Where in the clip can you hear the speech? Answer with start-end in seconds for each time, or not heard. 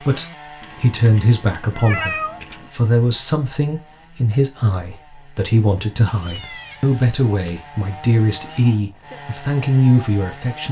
0.0-10.6.